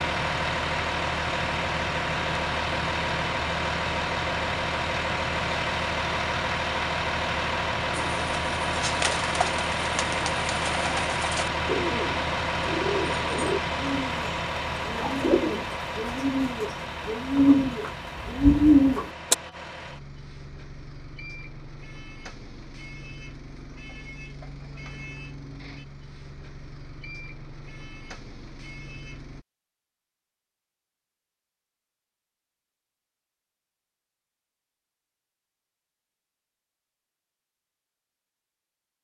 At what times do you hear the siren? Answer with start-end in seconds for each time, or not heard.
not heard.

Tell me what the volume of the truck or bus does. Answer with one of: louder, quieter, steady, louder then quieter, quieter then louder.
quieter.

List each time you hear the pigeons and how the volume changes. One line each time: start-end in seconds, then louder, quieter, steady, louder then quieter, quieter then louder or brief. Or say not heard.
7.9-19.4 louder.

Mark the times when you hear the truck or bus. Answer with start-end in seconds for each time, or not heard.
0.0-29.4.